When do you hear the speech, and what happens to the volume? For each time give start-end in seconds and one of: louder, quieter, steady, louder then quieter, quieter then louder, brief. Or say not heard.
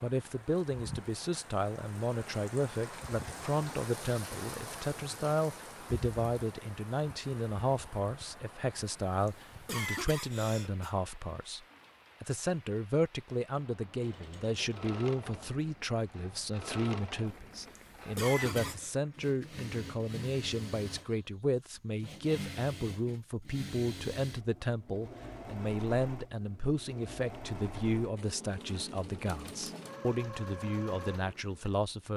0.0-32.1 steady.